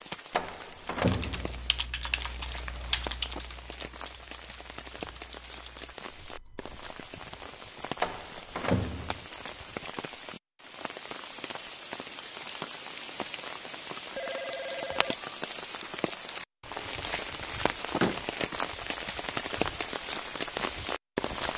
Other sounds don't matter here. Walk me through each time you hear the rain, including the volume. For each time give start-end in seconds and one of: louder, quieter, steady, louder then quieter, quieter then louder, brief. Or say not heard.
0.0-21.5 louder.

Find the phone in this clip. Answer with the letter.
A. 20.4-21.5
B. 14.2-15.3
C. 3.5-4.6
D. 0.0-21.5
B.